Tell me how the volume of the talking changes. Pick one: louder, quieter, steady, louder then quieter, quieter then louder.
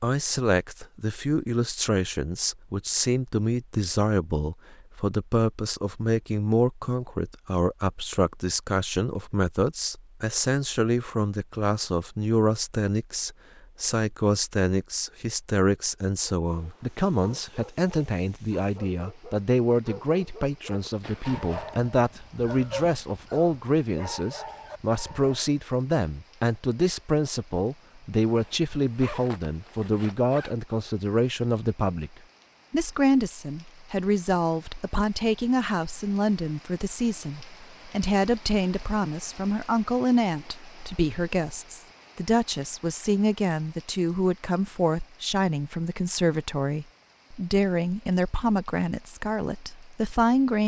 steady.